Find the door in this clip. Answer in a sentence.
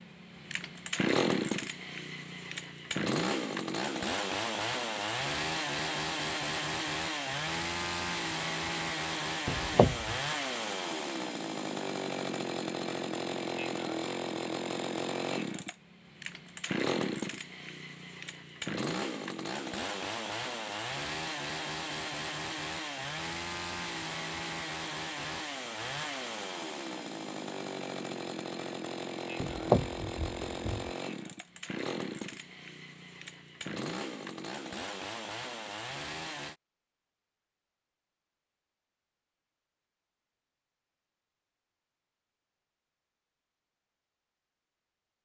The door can be heard from 9.4 to 10.2 s and from 29.4 to 30.9 s.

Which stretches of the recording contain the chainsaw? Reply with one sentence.
The chainsaw can be heard from 0.0 to 36.5 s.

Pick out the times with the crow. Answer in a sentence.
You can't hear the crow here.